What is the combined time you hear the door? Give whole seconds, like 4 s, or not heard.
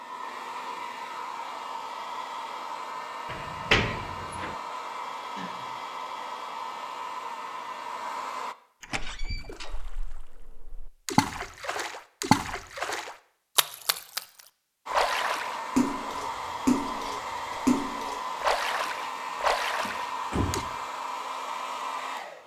3 s.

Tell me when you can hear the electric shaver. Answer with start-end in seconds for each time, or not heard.
not heard.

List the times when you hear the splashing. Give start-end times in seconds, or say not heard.
9.2-20.6.